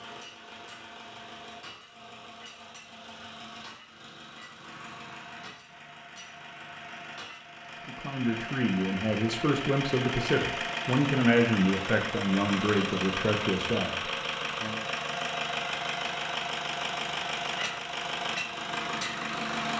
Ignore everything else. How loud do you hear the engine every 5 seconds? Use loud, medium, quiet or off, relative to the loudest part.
quiet, medium, loud, loud.